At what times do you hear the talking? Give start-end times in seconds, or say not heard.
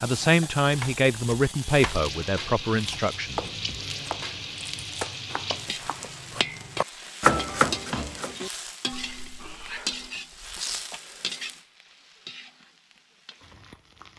0.0-3.5.